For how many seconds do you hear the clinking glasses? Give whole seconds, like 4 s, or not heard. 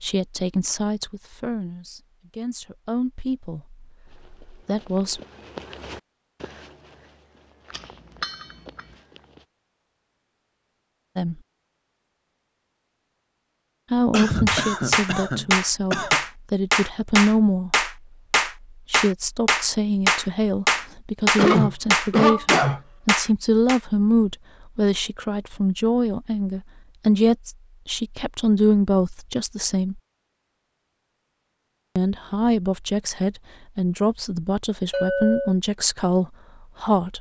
2 s.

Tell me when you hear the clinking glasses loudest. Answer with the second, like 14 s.
35 s.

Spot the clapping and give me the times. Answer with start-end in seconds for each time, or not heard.
14.4-23.8.